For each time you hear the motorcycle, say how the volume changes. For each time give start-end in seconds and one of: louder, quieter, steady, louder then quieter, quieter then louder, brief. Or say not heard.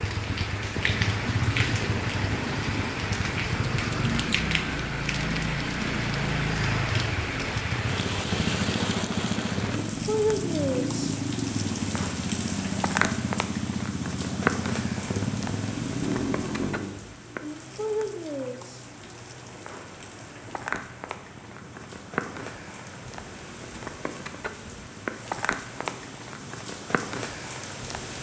0.0-27.9 quieter.